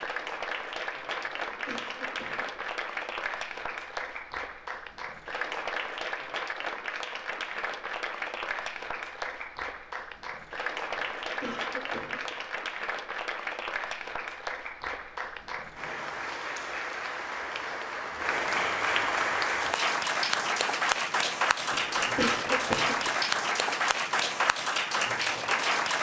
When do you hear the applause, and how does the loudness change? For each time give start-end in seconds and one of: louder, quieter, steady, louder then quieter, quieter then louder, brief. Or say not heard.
0.0-25.9 louder.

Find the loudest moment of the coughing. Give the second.
22 s.